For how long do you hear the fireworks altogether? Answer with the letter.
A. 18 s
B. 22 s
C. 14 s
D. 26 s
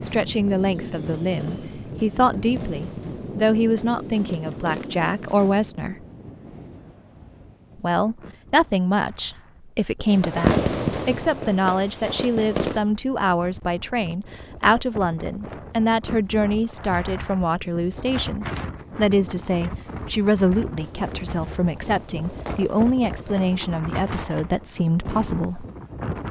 C.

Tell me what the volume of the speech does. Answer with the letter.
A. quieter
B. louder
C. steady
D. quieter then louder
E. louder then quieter
C.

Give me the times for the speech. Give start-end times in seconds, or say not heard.
0.0-6.0, 7.8-25.6.